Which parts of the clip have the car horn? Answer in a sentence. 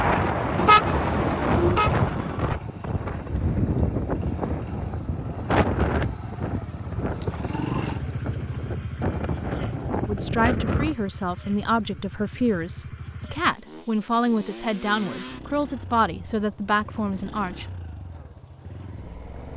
The car horn can be heard from 0.6 to 1.9 s.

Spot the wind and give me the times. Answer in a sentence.
The wind can be heard from 0.0 to 10.9 s.